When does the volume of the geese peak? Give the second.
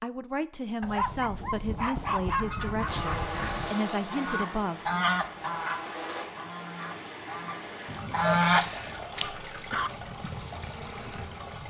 8 s.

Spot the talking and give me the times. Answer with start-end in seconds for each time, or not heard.
0.0-5.0.